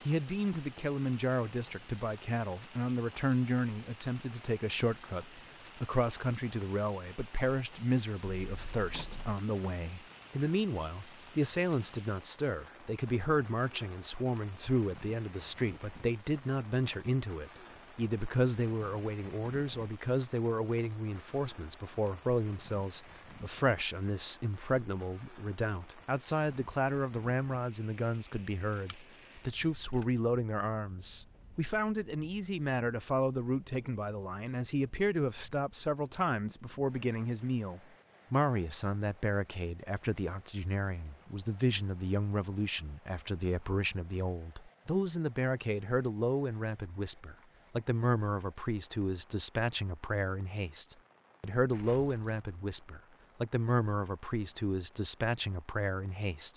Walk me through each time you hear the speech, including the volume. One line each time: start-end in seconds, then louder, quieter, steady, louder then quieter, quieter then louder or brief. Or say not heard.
0.0-56.5 steady.